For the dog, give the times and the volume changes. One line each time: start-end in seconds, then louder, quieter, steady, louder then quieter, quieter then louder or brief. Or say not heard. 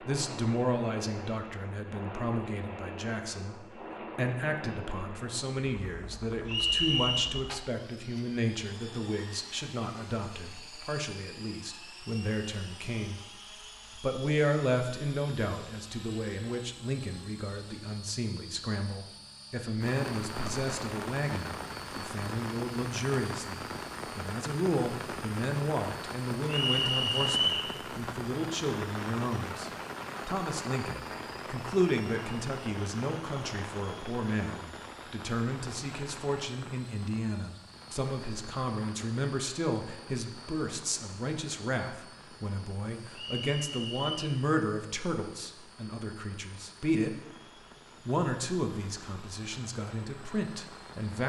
not heard.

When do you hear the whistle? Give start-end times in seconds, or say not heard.
6.5-7.3, 26.4-27.7, 43.1-44.2.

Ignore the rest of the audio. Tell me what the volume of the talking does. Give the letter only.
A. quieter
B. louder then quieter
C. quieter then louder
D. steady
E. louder
D.